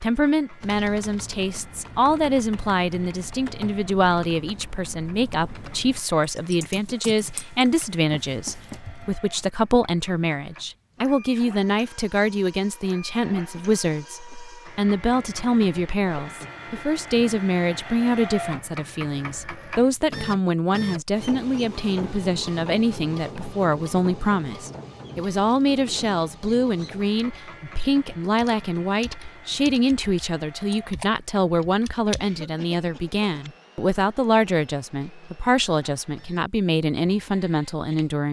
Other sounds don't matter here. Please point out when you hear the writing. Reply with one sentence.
The writing can't be heard in this clip.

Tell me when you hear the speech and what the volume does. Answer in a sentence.
You can hear the speech from 0.0 to 38.2 s, at a steady volume.